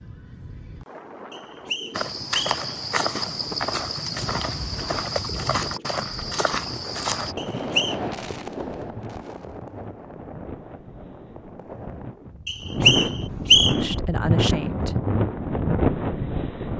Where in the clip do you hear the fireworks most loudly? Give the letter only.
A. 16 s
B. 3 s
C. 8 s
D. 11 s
C.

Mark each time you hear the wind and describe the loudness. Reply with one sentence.
The wind can be heard from 0.0 to 16.7 s, getting louder.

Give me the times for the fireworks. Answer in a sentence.
The fireworks can be heard from 6.1 to 12.2 s.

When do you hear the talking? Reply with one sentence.
You can hear the talking from 13.8 to 14.9 s.